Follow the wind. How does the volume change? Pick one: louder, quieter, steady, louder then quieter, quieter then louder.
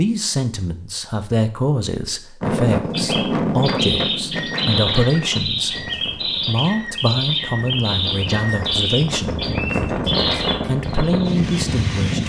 quieter then louder.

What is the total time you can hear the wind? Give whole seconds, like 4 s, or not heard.
10 s.